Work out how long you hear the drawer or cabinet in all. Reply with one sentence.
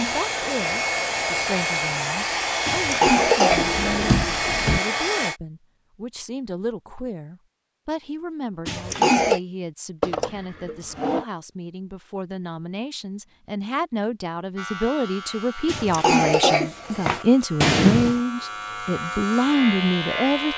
You can hear the drawer or cabinet for 3 seconds altogether.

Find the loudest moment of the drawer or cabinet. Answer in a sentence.
The loudest moment of the drawer or cabinet is at 18 seconds.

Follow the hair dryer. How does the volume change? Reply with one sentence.
The loudness of the hair dryer stays about the same.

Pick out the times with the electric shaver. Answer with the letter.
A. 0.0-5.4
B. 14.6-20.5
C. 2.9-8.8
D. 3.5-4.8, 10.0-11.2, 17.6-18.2
B.